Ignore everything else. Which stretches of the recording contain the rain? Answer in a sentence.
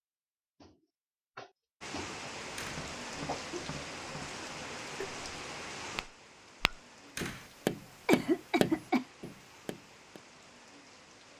You can hear the rain from 1.8 to 11.3 s.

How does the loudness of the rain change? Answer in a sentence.
The volume of the rain goes down.